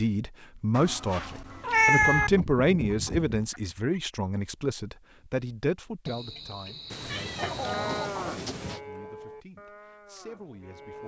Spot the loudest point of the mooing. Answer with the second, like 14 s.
8 s.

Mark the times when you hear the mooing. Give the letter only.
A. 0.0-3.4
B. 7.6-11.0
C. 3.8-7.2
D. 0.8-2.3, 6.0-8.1
B.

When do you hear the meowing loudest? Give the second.
2 s.